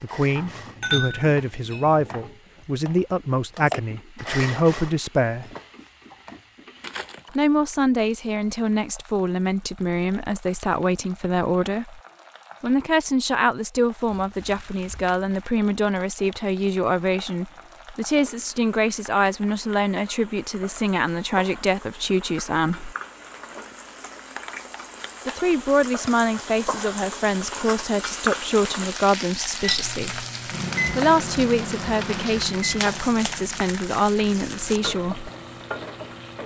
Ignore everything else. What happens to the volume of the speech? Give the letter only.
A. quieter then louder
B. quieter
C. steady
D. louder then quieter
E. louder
C.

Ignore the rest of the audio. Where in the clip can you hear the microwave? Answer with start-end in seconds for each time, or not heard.
29.6-36.4.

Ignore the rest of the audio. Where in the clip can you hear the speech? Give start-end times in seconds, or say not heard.
0.0-5.5, 7.3-12.0, 12.6-22.9, 25.2-30.2, 30.9-35.3.